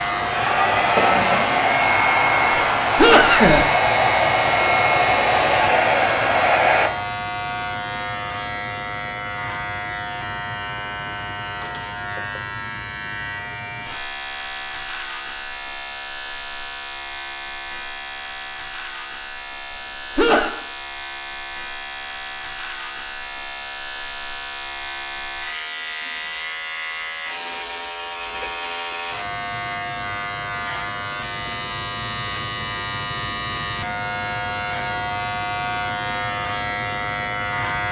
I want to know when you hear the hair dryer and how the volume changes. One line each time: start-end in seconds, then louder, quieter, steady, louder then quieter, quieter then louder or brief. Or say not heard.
0.0-6.9 steady.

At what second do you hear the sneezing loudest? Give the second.
3 s.